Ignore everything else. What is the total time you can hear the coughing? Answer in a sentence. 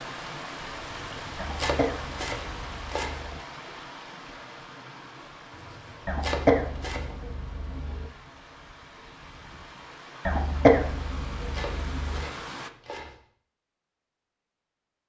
The coughing can be heard for 6 seconds in total.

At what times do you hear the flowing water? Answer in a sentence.
You can hear the flowing water from 0.0 to 12.7 s.